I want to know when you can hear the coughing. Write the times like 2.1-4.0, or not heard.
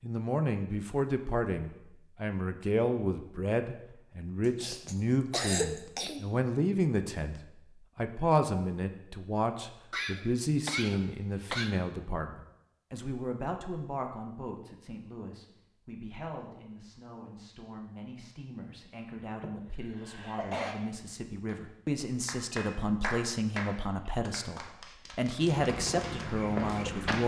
4.6-6.2, 9.9-11.8, 19.4-20.8.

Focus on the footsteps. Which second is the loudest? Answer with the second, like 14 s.
27 s.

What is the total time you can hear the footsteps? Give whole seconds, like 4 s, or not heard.
2 s.